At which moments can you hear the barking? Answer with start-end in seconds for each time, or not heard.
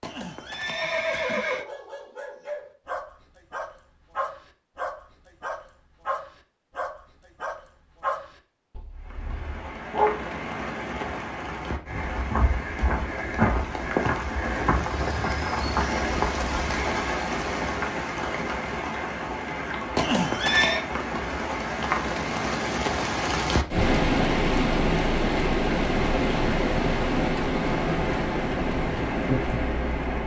1.4-10.1.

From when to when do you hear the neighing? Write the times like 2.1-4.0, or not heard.
0.0-1.6, 19.9-20.9.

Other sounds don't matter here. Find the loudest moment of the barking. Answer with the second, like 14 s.
10 s.